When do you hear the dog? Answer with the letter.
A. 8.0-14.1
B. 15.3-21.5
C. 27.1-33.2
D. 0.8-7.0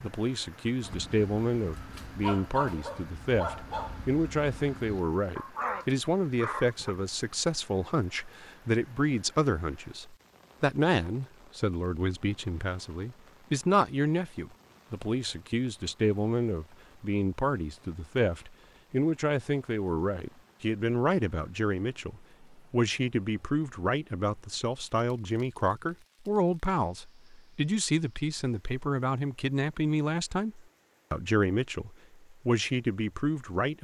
D.